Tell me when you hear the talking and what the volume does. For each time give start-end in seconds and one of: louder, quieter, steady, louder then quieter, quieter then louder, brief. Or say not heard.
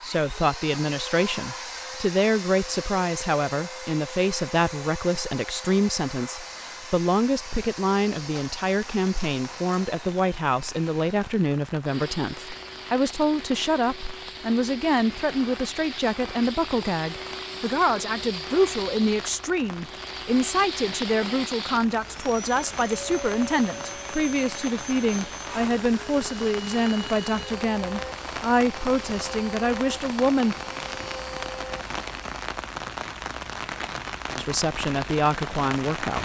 0.0-30.6 steady
34.4-36.2 brief.